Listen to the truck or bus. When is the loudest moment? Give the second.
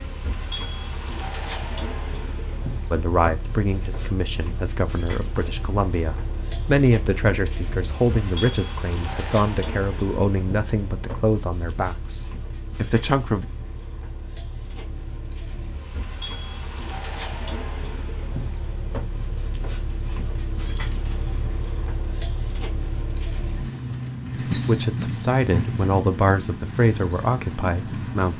25 s.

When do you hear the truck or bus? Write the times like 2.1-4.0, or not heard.
0.0-28.3.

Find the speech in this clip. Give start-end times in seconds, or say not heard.
2.9-13.4, 24.4-28.3.